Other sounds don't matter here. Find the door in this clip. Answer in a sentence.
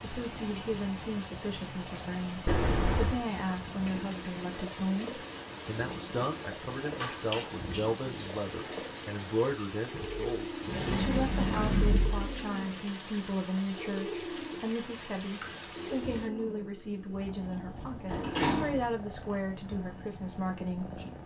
The door can be heard from 2.5 to 3.2 s, from 9.9 to 12.3 s and from 18.1 to 18.9 s.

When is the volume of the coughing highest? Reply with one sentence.
The loudest moment of the coughing is at 7 seconds.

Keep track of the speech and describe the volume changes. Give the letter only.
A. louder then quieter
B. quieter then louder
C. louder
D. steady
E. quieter
D.